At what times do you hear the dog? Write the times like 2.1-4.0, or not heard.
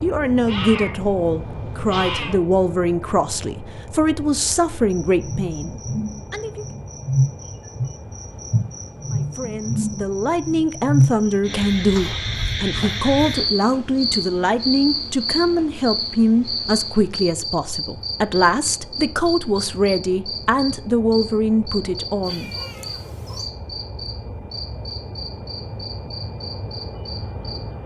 not heard.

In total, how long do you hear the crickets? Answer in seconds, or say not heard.
23 s.